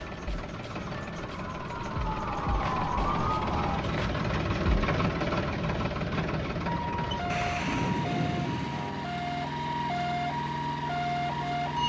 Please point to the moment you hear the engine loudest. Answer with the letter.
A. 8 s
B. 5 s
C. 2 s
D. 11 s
B.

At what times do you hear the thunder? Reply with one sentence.
You can hear the thunder from 7.3 to 8.9 s.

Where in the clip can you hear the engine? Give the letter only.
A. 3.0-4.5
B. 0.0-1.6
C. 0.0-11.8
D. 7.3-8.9
C.